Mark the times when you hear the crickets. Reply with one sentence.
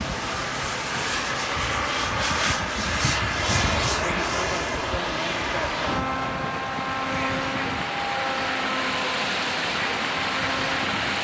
The crickets can't be heard in this clip.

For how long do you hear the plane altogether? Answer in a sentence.
You can hear the plane for 11 seconds altogether.